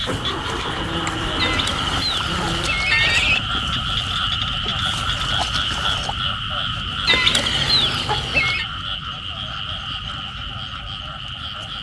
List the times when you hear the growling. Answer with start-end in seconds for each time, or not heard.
0.7-2.7.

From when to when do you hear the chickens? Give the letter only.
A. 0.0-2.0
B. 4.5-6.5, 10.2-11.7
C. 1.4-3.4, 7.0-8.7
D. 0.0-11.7
C.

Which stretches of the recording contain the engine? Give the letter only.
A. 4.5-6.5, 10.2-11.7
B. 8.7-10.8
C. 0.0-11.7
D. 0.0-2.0
D.